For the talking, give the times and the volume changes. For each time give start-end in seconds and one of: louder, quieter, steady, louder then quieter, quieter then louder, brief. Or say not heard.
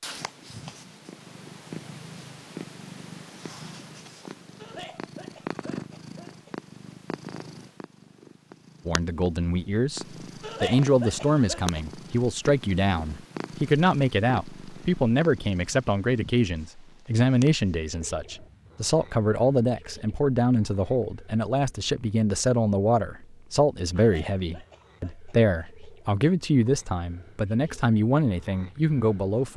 8.8-29.5 steady.